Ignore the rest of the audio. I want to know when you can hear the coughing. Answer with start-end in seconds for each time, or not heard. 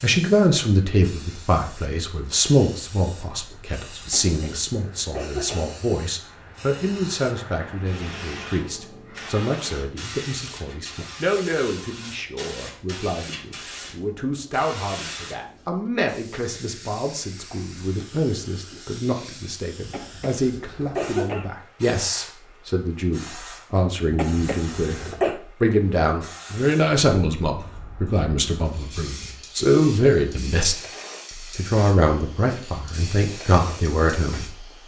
4.0-5.7, 19.9-21.5, 24.1-25.4.